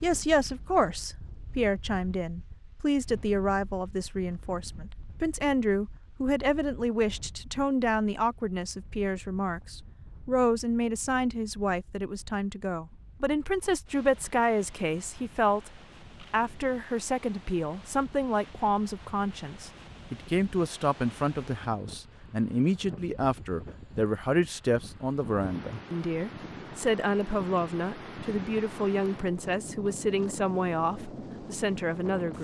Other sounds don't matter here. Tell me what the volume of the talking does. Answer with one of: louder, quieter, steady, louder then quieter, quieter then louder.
steady.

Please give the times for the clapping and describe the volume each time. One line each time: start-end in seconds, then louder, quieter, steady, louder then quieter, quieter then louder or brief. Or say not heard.
not heard.